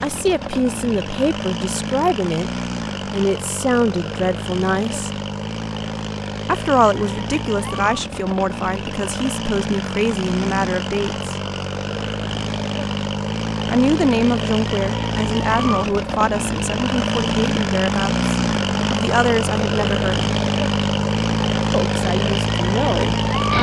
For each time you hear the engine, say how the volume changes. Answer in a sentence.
The engine can be heard from 0.0 to 23.5 s, getting louder.